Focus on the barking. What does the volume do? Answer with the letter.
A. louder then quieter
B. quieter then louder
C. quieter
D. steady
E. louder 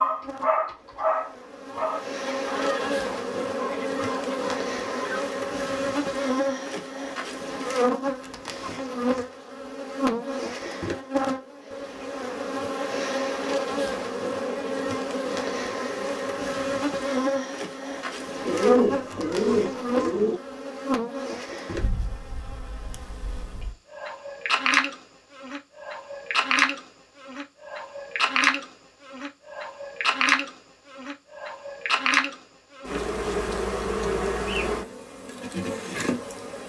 C.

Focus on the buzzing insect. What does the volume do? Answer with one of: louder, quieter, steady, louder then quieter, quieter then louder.
steady.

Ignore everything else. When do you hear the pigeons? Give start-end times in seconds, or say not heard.
18.4-20.4.